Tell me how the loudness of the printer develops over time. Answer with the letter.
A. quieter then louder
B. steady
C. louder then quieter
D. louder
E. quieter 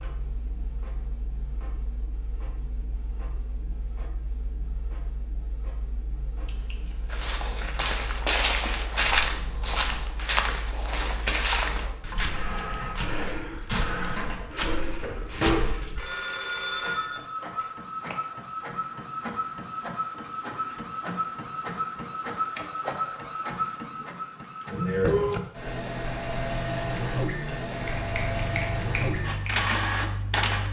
D.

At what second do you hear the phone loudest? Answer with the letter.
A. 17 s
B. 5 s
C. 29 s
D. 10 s
A.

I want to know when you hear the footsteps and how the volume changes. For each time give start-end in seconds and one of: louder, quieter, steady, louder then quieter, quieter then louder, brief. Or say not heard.
7.1-16.1 quieter.